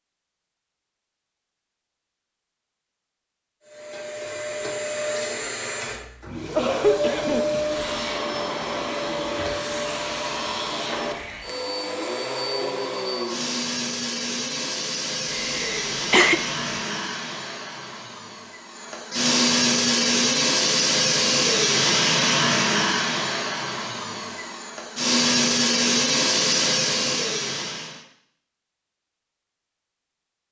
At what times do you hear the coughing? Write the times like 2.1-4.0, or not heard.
6.5-7.7, 15.3-16.4.